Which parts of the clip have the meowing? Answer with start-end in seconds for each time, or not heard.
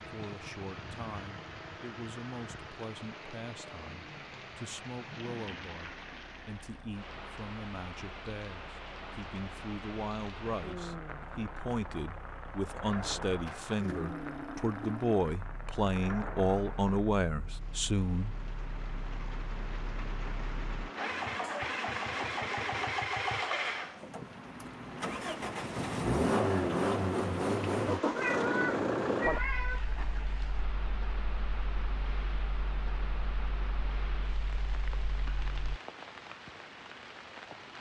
28.1-29.8.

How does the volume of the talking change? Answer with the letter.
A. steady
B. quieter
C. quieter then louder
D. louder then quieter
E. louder
E.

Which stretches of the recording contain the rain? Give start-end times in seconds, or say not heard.
0.0-37.7.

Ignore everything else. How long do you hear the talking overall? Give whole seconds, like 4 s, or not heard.
18 s.